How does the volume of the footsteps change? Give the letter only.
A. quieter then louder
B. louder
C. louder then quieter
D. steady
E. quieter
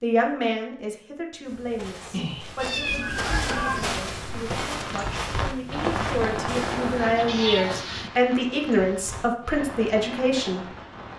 C.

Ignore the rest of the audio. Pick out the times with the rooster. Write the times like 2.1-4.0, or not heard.
2.1-3.9.